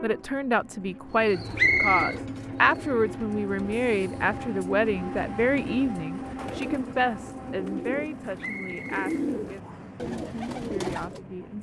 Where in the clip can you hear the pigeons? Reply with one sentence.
The pigeons can be heard from 1.1 to 11.2 s.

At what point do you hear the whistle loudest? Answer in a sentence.
The loudest moment of the whistle is at 2 seconds.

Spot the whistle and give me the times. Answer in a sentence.
You can hear the whistle from 1.6 to 2.1 s and from 8.4 to 10.0 s.